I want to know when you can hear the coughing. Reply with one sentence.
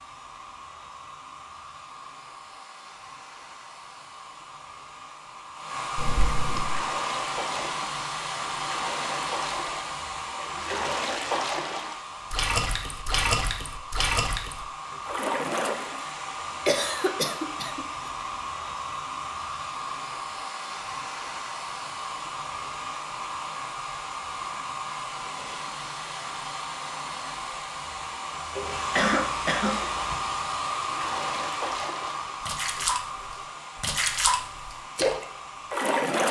You can hear the coughing from 6.0 to 6.8 s, from 16.6 to 18.1 s and from 28.9 to 30.1 s.